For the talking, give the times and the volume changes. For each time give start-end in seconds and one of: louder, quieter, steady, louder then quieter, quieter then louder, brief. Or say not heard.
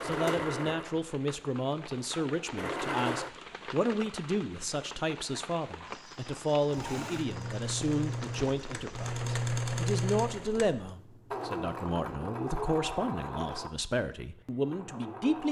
0.0-15.4 steady.